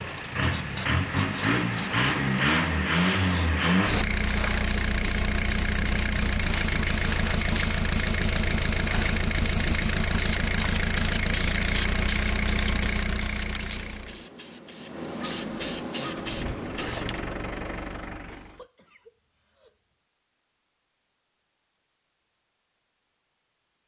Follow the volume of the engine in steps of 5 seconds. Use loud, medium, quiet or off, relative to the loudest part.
loud, loud, loud, medium, off.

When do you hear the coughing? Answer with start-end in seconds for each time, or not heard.
18.2-19.8.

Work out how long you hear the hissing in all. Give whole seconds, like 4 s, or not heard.
17 s.